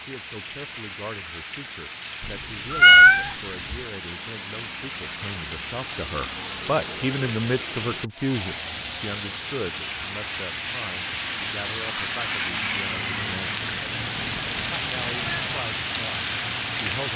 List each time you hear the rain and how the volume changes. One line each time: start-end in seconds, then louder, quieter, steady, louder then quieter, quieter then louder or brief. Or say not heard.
0.0-17.1 louder.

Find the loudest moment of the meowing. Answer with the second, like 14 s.
3 s.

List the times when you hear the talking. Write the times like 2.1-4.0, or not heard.
0.1-13.6, 14.7-17.1.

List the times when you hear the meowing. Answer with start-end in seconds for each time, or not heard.
2.2-3.8, 13.6-15.6.